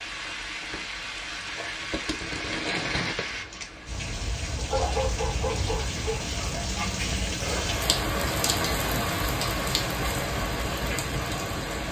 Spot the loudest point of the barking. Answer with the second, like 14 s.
5 s.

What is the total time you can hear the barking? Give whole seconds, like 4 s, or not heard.
2 s.